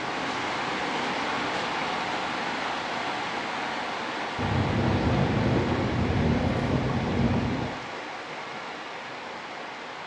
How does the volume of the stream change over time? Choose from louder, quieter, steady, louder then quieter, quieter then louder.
quieter.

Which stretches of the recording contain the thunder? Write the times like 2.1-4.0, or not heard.
4.3-7.8.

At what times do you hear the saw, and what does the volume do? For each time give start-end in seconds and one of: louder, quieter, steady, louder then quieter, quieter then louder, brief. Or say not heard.
not heard.